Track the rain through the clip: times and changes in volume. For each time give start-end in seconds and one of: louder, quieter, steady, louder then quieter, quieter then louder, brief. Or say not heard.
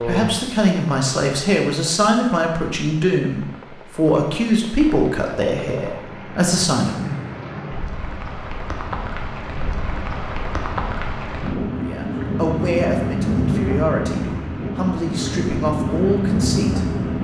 0.0-17.1 louder.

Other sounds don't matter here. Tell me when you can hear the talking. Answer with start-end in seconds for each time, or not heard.
0.1-7.2, 11.7-17.1.